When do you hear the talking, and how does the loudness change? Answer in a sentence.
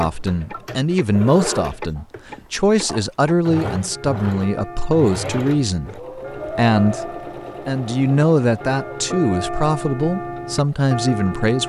The talking can be heard from 0.0 to 11.6 s, at a steady volume.